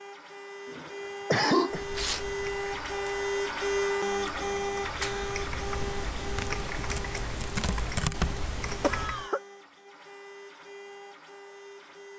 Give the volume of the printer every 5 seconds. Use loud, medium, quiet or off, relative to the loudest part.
loud, medium, quiet.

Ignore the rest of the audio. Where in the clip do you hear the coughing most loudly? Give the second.
1 s.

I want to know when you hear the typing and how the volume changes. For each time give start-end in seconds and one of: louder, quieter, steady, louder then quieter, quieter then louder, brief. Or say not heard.
1.7-9.3 louder.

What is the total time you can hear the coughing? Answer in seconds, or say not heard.
2 s.